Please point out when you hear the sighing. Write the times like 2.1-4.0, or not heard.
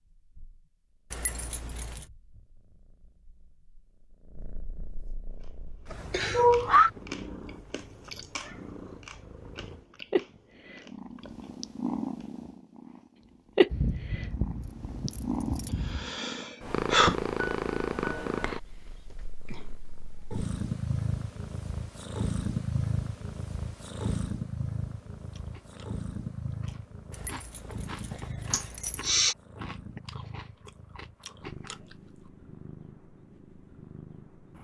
6.1-6.9, 15.5-17.1, 28.5-29.4.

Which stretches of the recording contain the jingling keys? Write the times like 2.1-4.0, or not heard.
1.1-2.0, 13.7-16.1, 27.1-29.1.